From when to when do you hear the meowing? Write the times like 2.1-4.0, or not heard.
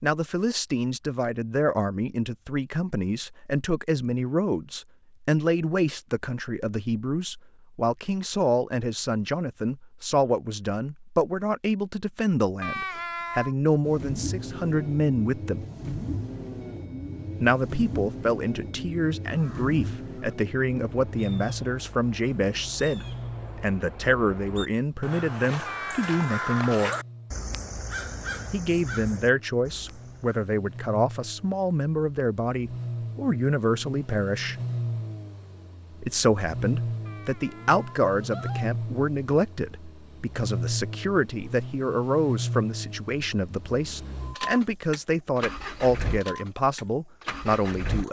12.6-13.6, 25.6-26.9, 37.0-38.7.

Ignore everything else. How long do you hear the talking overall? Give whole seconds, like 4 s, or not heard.
43 s.